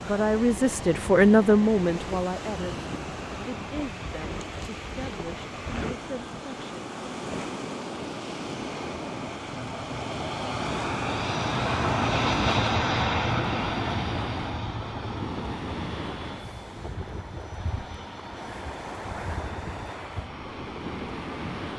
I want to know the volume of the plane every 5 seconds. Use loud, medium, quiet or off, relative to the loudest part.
quiet, quiet, loud, quiet, quiet.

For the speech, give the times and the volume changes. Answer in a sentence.
You can hear the speech from 0.0 to 6.7 s, getting quieter.